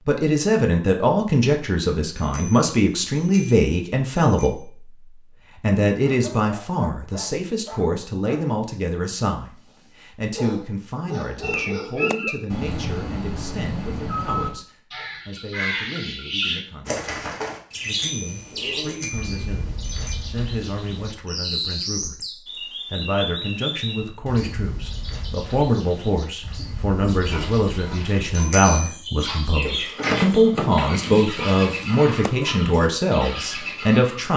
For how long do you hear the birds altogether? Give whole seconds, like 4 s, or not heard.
23 s.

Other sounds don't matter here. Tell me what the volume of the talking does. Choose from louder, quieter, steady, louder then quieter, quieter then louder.
quieter then louder.